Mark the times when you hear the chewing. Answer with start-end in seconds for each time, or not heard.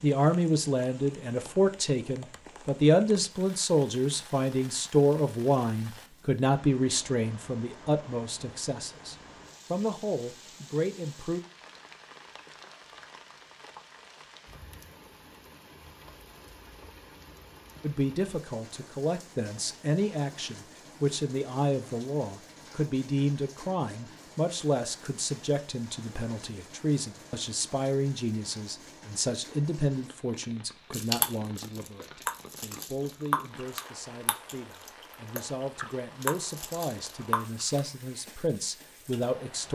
30.9-37.8.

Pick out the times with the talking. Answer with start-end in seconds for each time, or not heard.
0.0-11.4, 17.8-39.6.